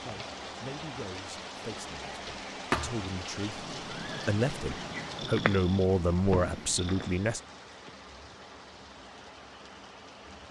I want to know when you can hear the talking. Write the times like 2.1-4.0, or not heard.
0.0-7.4.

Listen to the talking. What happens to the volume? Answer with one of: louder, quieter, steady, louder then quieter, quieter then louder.
louder.